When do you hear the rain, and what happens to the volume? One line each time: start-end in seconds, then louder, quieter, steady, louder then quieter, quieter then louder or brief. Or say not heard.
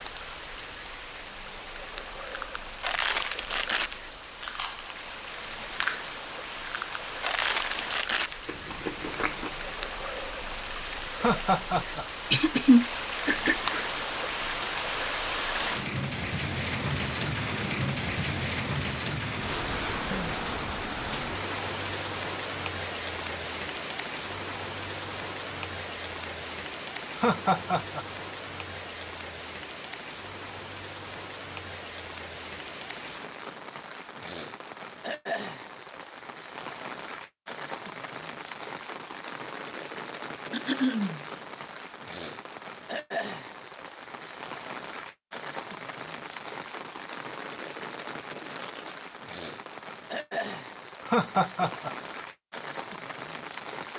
0.0-53.9 louder then quieter.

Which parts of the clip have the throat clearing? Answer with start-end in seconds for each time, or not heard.
12.3-13.8, 40.5-41.2.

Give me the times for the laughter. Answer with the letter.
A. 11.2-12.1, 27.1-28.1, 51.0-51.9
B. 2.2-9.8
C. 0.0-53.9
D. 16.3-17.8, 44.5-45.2
A.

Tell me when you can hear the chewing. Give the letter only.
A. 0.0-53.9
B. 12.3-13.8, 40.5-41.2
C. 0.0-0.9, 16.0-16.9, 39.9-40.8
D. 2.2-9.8
D.